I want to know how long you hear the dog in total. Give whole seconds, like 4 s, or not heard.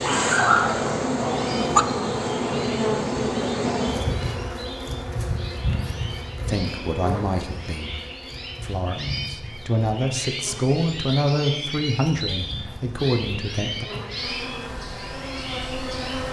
2 s.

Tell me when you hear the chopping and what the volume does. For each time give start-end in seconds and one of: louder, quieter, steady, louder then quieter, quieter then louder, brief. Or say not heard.
not heard.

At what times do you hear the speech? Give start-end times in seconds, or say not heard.
6.5-8.0, 8.6-13.8.